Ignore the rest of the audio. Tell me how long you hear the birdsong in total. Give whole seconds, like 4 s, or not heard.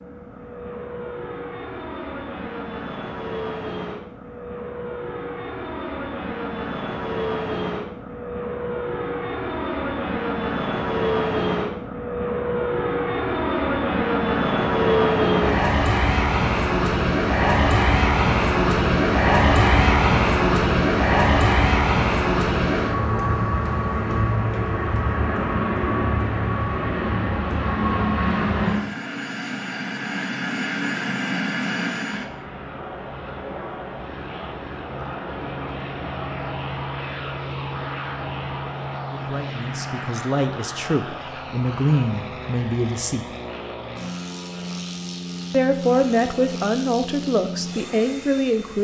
not heard.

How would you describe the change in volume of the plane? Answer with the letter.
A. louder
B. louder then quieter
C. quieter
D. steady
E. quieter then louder
B.